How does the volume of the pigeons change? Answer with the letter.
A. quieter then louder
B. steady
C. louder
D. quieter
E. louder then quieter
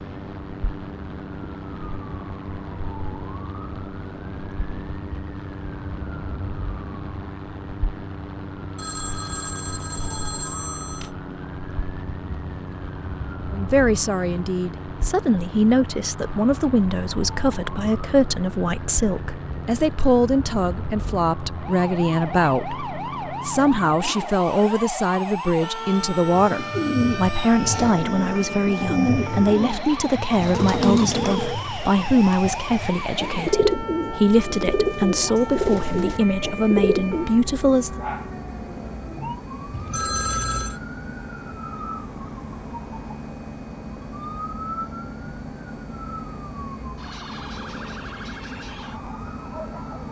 B.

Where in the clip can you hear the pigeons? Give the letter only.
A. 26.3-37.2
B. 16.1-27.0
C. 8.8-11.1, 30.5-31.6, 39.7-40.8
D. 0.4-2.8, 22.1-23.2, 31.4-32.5
A.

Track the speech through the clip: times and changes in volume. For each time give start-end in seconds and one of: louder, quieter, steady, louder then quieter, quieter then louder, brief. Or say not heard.
13.5-38.0 steady.